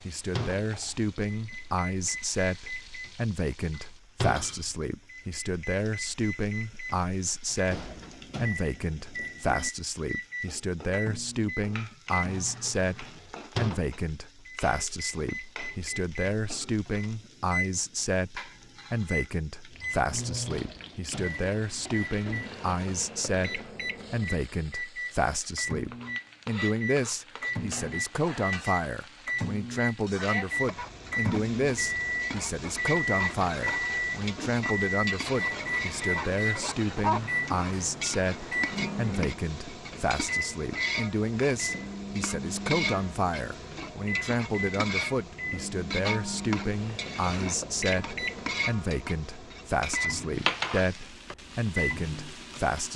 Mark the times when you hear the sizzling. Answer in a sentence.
The sizzling can be heard from 0.0 to 52.9 s.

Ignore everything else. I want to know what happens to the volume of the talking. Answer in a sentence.
The loudness of the talking stays about the same.